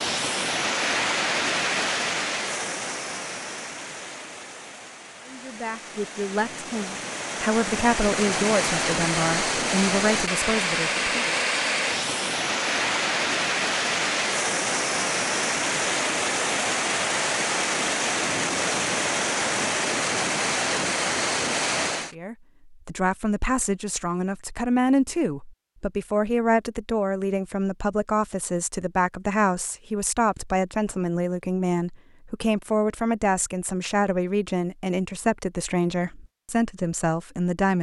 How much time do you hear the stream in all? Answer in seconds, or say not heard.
22 s.